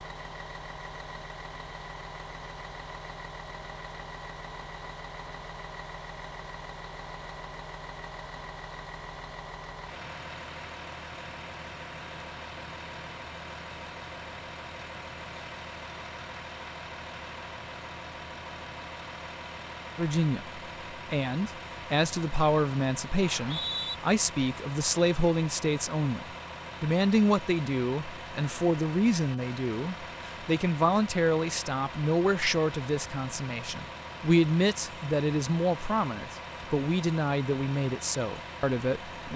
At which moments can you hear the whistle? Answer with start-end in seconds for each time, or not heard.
23.2-23.9.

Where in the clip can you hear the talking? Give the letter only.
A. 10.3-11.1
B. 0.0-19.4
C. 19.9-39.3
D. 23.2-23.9
C.